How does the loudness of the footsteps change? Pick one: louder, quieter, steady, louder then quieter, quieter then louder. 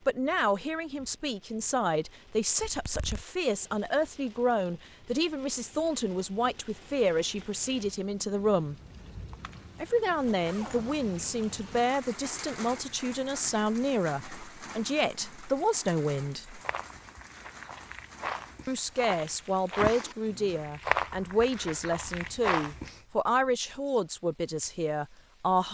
louder.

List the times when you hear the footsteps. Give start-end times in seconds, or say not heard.
16.6-23.0.